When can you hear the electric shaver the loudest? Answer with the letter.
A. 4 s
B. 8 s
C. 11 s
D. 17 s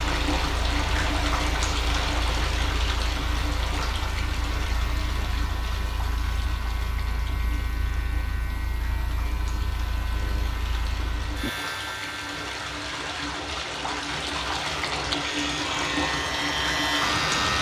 D.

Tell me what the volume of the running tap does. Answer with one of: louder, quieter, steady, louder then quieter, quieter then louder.
quieter then louder.